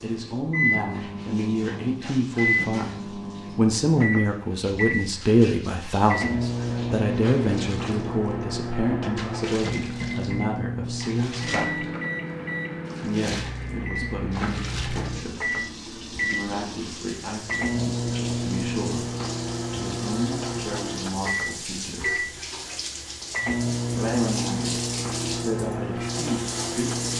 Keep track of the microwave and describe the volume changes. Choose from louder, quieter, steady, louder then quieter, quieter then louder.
steady.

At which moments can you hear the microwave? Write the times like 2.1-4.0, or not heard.
0.0-27.1.